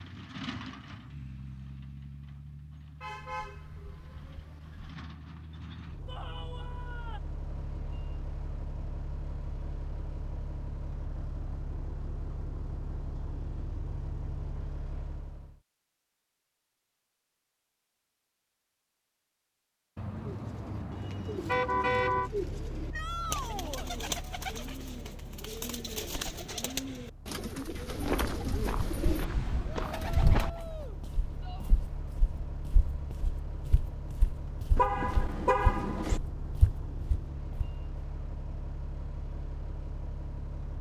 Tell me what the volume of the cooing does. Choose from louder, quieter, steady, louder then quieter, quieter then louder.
steady.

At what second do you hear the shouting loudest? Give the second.
23 s.